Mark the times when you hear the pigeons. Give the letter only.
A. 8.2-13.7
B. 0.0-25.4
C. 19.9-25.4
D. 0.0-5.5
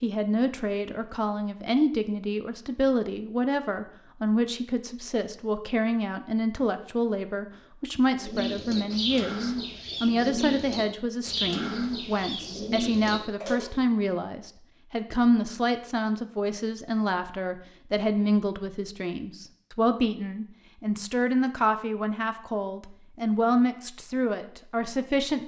A.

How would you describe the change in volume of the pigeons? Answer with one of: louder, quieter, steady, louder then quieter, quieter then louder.
steady.